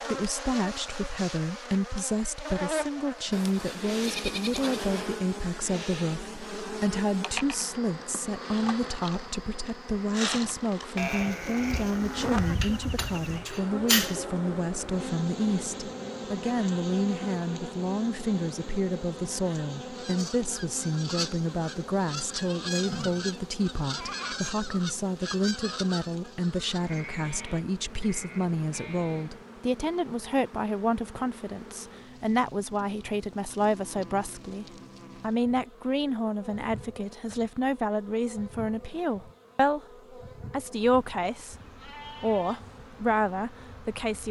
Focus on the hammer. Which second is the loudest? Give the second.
14 s.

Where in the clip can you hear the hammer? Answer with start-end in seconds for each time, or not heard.
12.6-14.2.